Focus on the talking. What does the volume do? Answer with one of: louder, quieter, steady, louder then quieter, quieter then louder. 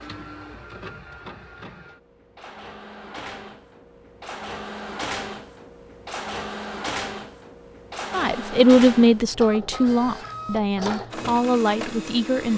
quieter.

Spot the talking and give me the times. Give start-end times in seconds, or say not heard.
8.1-12.5.